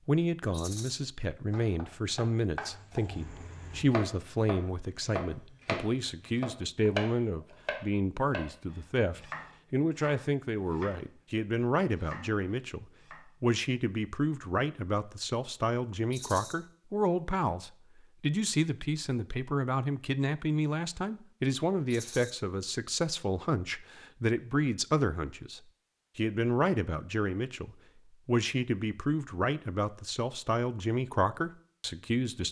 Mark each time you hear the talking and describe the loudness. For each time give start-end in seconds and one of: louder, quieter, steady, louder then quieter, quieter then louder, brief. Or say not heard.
0.1-32.4 steady.